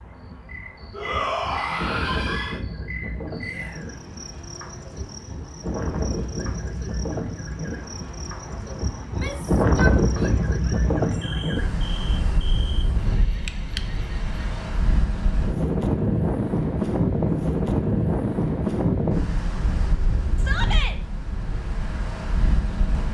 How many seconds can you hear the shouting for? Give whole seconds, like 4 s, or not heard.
4 s.